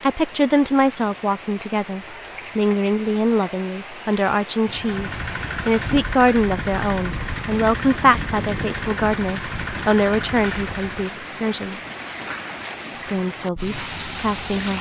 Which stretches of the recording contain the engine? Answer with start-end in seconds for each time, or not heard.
4.7-11.2.